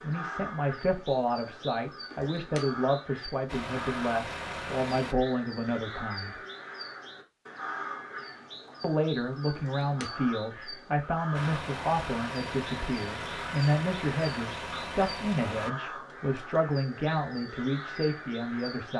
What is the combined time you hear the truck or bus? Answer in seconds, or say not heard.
6 s.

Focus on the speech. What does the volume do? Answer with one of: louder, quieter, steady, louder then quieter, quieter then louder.
steady.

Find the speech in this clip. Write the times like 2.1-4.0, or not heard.
0.0-6.3, 8.8-18.9.